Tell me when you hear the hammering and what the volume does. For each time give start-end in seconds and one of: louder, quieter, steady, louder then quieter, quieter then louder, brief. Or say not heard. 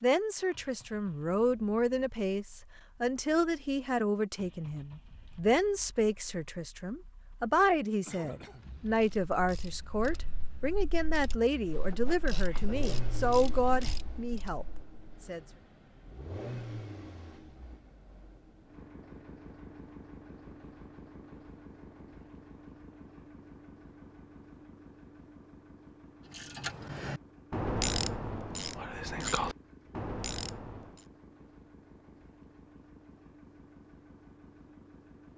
not heard.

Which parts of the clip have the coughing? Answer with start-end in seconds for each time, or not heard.
8.1-8.8.